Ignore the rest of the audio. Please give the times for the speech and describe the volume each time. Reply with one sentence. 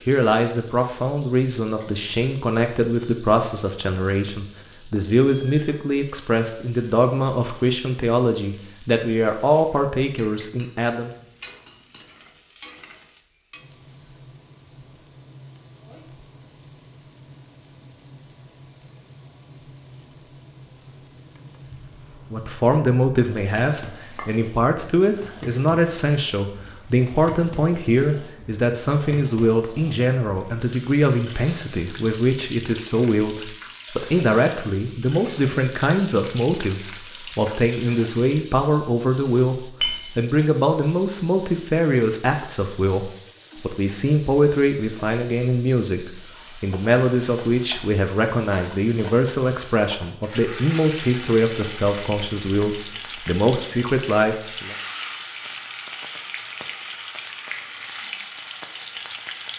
The speech can be heard from 0.1 to 11.2 s, at a steady volume; and from 22.3 to 54.8 s, at a steady volume.